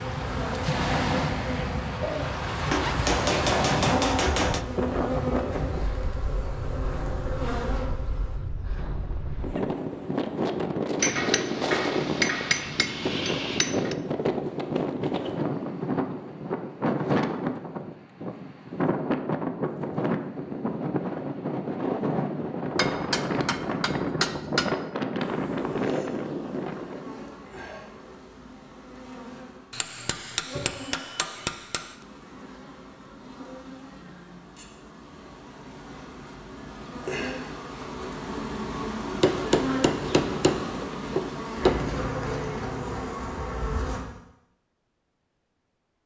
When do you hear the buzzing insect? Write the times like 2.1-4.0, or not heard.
0.0-8.3, 25.1-44.0.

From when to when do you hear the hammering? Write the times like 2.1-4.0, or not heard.
2.7-4.7, 10.9-13.9, 22.8-24.8, 29.7-31.9, 39.2-41.9.